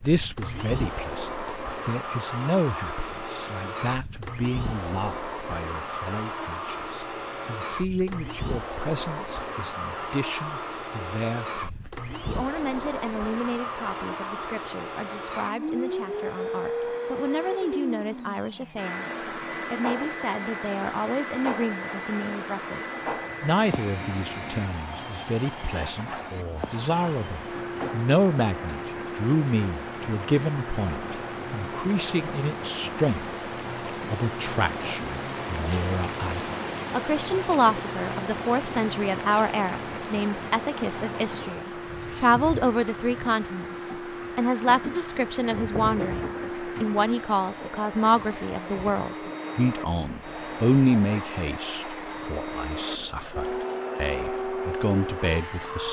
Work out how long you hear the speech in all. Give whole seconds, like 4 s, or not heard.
55 s.